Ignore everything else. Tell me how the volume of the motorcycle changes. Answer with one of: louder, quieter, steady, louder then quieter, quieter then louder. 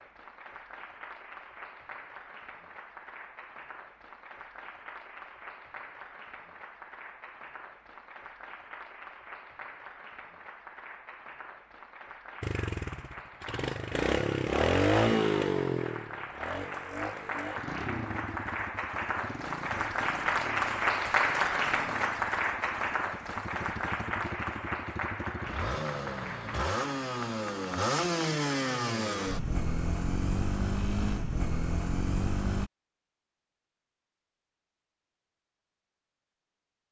quieter then louder.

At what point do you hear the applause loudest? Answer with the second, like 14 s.
21 s.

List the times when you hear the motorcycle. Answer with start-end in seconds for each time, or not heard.
12.4-32.7.